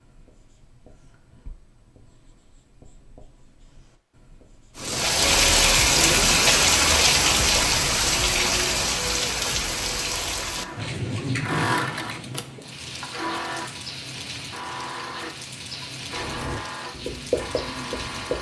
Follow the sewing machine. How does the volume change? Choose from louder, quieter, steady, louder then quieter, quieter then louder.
quieter.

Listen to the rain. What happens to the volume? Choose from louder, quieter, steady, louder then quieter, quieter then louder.
quieter.